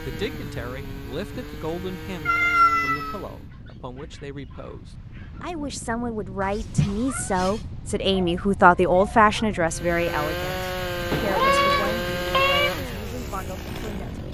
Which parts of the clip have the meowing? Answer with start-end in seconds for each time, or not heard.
2.2-3.2, 6.4-7.6, 11.1-12.7.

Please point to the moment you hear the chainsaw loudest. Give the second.
12 s.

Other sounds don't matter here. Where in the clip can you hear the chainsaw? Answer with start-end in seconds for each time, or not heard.
0.0-3.5, 9.7-14.3.